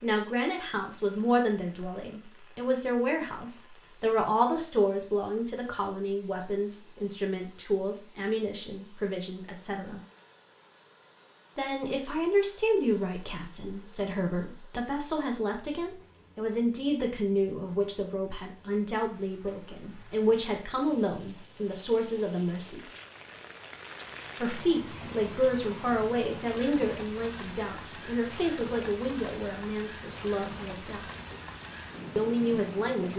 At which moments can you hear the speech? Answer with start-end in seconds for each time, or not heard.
0.0-10.0, 11.6-22.9, 24.4-31.1, 32.1-33.1.